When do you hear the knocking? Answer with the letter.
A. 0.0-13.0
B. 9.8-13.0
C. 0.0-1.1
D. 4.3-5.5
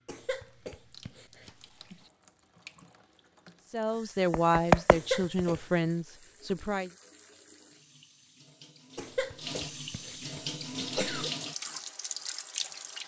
D.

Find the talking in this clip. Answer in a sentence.
You can hear the talking from 3.7 to 6.9 s.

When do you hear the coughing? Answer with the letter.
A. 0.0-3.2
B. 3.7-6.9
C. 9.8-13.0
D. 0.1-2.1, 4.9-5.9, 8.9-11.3
D.